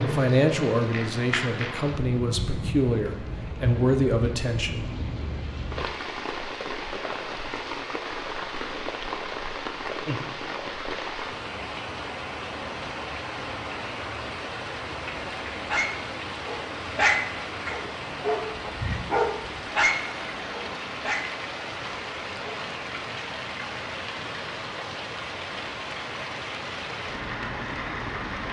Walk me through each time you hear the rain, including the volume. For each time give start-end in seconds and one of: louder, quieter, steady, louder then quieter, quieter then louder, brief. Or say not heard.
0.0-28.4 steady.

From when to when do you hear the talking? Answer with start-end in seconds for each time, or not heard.
0.0-4.9.